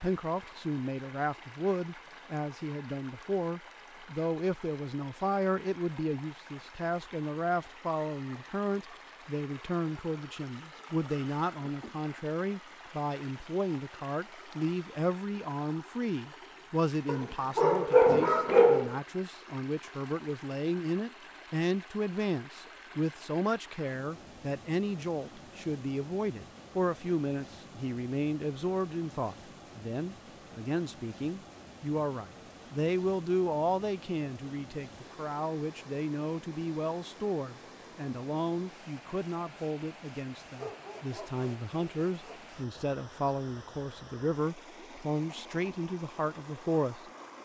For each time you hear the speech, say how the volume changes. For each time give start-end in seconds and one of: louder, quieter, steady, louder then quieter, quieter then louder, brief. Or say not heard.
0.0-47.0 steady.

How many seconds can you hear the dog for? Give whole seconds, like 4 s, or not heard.
4 s.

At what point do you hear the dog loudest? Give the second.
18 s.